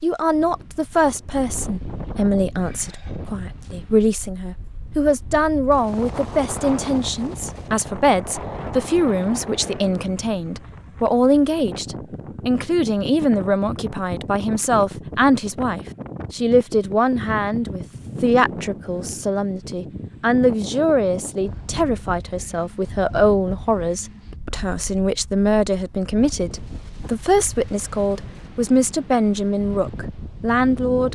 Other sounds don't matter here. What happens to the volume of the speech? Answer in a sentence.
The loudness of the speech stays about the same.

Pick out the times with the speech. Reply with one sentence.
The speech can be heard from 0.0 to 31.0 s.